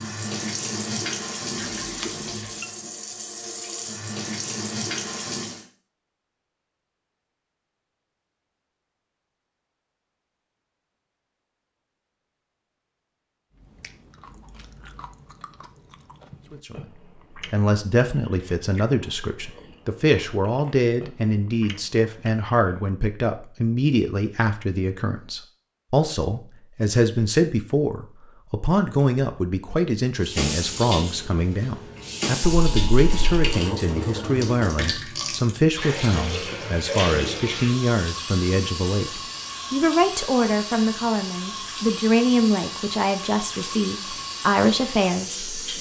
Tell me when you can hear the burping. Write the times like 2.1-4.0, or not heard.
not heard.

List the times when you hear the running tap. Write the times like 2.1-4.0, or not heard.
0.0-5.7, 30.2-45.7.